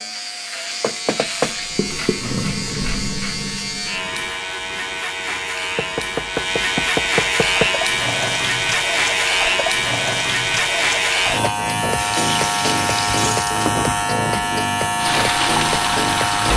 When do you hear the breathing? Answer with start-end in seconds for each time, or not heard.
not heard.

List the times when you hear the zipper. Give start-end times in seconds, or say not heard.
not heard.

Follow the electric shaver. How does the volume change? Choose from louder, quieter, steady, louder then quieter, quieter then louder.
louder.